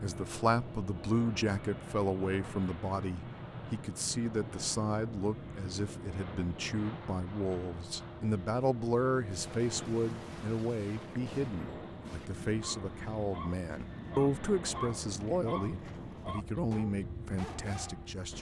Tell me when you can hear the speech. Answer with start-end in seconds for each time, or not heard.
0.0-18.3.